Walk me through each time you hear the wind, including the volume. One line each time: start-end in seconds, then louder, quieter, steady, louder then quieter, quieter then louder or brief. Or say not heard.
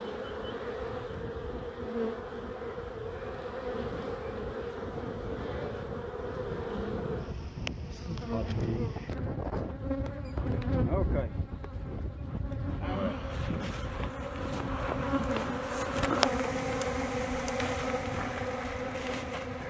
0.1-19.6 louder then quieter.